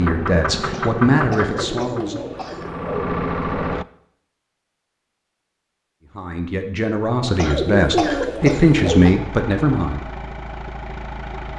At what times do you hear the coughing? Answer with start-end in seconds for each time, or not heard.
0.7-2.7, 7.3-9.2.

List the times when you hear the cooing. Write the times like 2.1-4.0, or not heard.
1.5-3.1, 7.2-9.1.